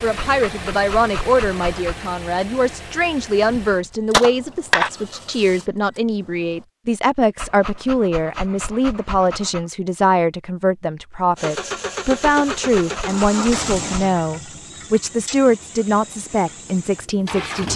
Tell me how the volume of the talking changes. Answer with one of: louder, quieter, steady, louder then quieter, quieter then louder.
steady.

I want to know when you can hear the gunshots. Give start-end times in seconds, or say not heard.
3.5-4.9.